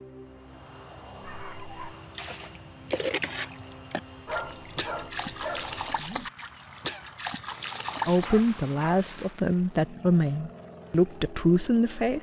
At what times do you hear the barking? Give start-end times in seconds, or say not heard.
1.2-1.9, 4.2-6.3, 8.2-9.4.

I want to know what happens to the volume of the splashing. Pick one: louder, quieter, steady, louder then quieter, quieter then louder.
quieter then louder.